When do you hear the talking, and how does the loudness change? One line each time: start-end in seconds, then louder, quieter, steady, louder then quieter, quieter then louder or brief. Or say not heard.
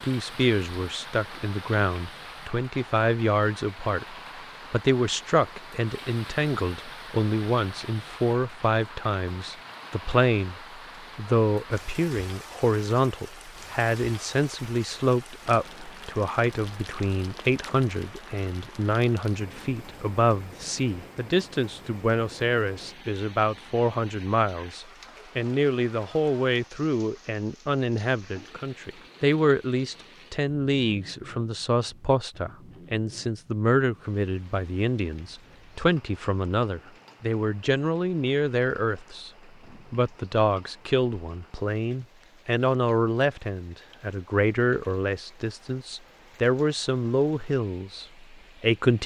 0.0-39.3 steady
39.9-49.0 steady.